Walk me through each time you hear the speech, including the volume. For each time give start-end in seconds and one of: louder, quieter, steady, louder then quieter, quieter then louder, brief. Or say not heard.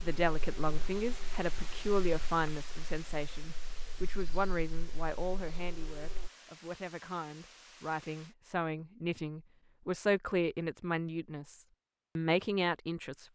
0.0-13.3 quieter then louder.